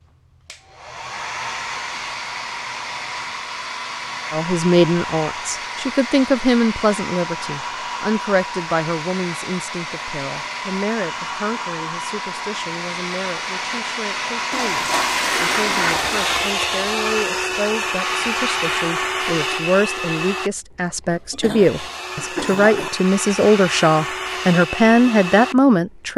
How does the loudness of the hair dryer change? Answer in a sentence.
The loudness of the hair dryer goes up, then down.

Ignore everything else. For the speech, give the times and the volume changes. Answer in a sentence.
The speech can be heard from 4.3 to 26.1 s, getting quieter then louder.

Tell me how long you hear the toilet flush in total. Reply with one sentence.
You can hear the toilet flush for 2 seconds altogether.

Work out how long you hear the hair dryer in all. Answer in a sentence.
The hair dryer can be heard for 26 seconds in total.